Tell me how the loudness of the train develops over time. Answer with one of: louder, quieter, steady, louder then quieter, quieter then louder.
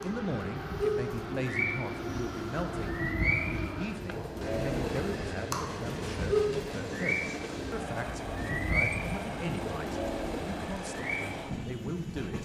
steady.